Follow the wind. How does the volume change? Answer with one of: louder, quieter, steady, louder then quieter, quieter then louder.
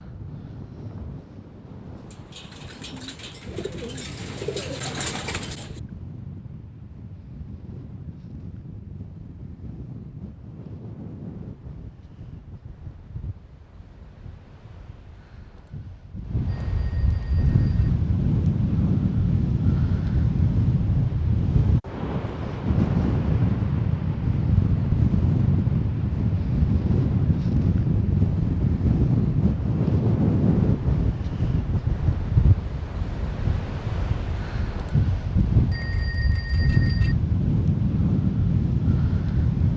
louder.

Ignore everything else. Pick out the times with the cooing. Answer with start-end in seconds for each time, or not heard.
2.0-5.8.